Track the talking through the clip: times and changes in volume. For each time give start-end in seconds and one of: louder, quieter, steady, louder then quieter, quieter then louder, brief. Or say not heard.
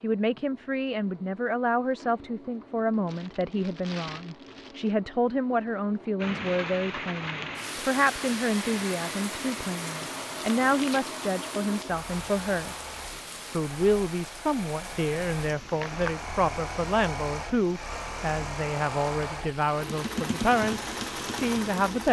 0.0-12.8 steady
13.5-22.0 steady.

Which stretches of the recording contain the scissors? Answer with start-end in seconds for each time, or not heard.
not heard.